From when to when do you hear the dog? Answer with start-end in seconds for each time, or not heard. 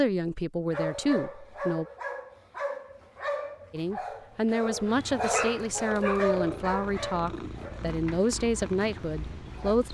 0.7-9.8.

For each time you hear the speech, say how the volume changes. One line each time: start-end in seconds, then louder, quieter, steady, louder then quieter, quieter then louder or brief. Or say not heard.
0.0-1.9 brief
3.7-9.9 steady.